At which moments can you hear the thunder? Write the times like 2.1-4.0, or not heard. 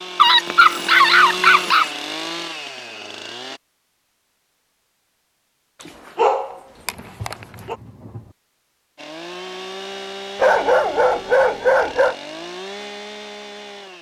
6.8-8.3.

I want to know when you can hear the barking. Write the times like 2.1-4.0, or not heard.
0.1-1.9, 5.8-7.8, 10.3-12.2.